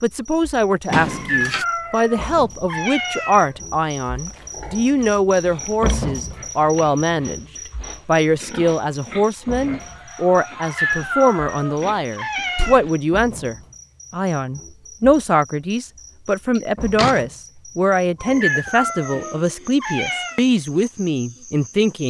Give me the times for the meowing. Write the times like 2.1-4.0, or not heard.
1.1-3.5, 10.6-12.8, 18.2-20.4.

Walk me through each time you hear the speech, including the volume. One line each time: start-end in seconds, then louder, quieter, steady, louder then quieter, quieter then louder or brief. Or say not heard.
0.0-22.0 steady.